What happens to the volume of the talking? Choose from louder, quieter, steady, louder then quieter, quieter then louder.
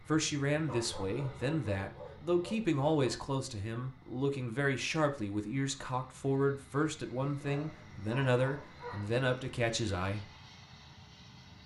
steady.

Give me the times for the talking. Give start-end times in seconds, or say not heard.
0.0-10.3.